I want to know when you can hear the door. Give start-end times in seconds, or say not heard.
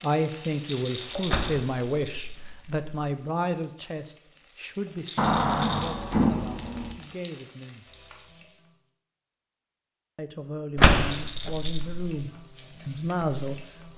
1.2-2.8, 5.2-7.0, 10.8-12.2.